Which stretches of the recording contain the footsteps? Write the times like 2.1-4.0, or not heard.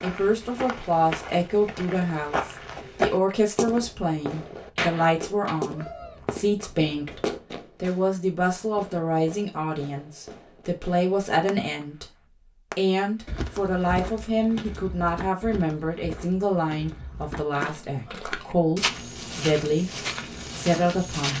0.0-7.6, 13.2-21.3.